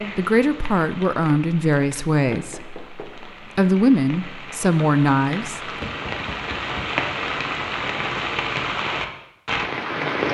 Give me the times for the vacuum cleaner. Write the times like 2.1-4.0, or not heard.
not heard.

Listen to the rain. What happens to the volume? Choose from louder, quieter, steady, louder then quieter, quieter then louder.
louder.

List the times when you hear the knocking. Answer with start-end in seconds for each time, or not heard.
2.3-3.2, 5.8-7.0.